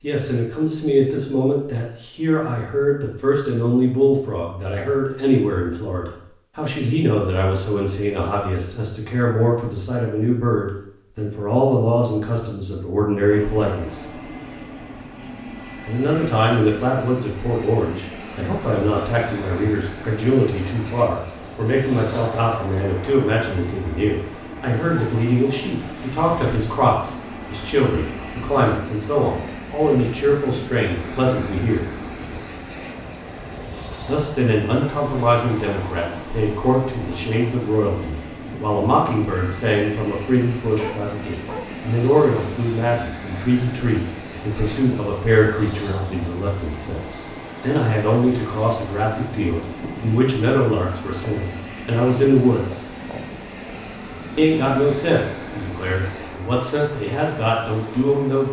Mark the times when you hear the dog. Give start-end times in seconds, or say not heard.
40.6-41.9.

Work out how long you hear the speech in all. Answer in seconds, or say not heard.
53 s.